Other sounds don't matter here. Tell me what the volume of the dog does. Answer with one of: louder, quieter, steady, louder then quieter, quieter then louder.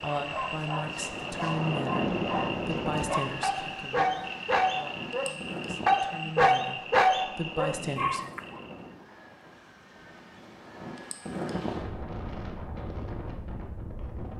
louder.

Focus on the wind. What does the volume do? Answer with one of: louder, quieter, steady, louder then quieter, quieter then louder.
quieter then louder.